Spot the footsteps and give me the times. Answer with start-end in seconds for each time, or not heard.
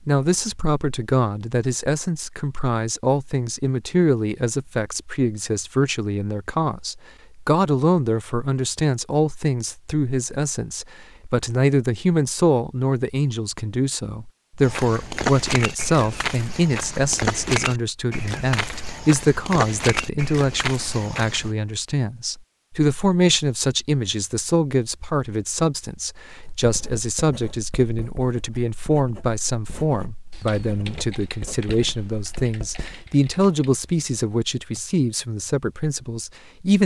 14.6-21.5.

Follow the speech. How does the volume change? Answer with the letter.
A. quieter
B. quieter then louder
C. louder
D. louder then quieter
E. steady
E.